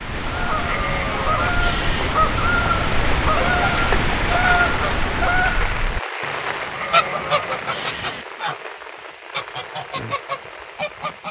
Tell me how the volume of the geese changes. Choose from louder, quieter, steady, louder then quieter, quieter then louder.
quieter.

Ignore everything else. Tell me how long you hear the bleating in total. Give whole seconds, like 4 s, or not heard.
4 s.